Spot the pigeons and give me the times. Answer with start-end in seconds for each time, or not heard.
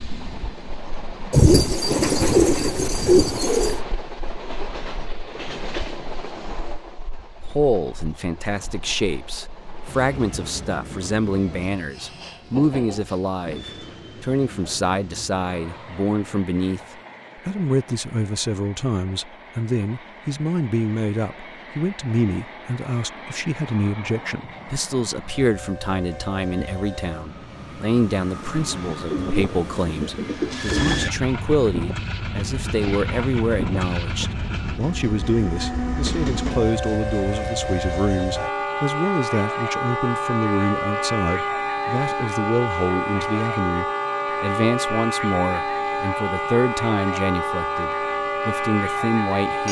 1.3-3.8, 29.1-31.1.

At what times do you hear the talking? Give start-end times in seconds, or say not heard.
7.4-16.8, 17.4-49.6.